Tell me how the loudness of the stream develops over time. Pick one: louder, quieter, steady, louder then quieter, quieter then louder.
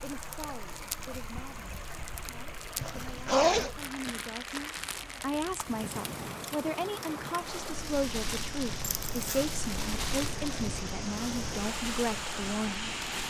louder.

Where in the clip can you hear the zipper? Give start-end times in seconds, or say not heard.
2.8-3.7, 8.8-9.4.